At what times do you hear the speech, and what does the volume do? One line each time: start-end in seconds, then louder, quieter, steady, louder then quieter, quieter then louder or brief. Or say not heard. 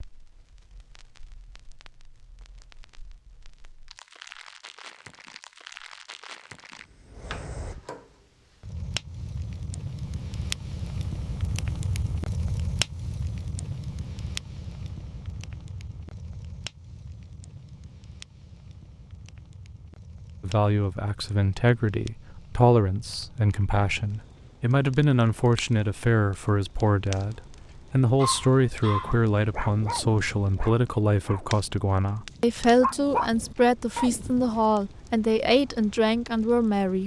20.4-37.0 steady.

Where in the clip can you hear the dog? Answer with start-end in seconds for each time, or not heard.
28.1-34.6.